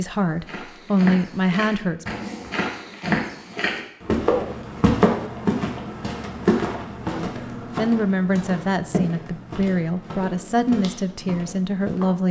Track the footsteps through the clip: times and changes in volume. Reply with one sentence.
You can hear the footsteps from 0.4 to 12.2 s, getting louder then quieter.